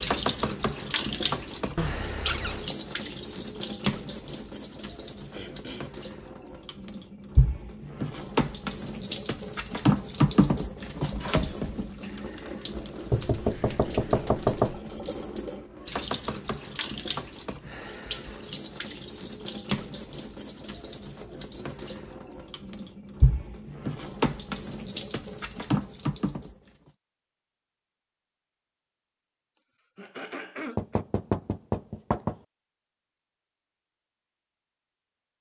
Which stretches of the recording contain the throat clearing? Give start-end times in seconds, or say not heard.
5.3-5.9, 29.9-31.1.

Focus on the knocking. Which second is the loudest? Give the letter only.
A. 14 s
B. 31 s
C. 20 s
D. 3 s
A.